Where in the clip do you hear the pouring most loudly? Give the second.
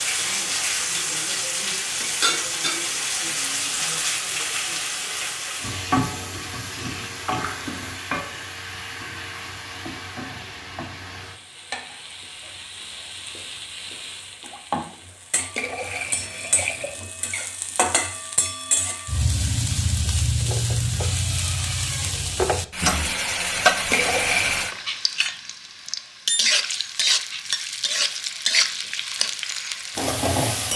24 s.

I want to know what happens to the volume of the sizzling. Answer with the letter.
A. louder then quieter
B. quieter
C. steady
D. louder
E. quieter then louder
E.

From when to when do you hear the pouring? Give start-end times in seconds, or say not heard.
7.2-7.7, 15.6-16.9, 23.9-24.6.